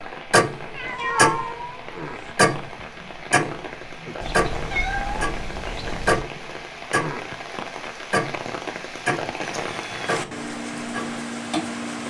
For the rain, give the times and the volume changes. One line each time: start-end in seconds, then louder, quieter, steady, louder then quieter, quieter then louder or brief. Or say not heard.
0.0-12.0 louder.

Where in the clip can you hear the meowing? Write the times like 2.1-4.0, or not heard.
0.8-2.3, 4.2-6.2, 9.4-10.3.